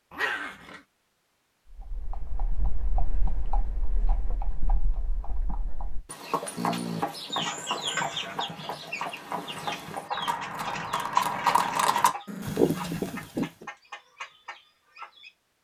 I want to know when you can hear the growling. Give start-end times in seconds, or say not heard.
0.1-0.8, 6.5-7.5, 12.2-13.2.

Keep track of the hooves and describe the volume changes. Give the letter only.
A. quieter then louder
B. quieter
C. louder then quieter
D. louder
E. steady
D.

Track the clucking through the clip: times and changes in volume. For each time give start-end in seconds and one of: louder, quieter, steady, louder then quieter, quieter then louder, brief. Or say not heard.
7.3-15.3 quieter.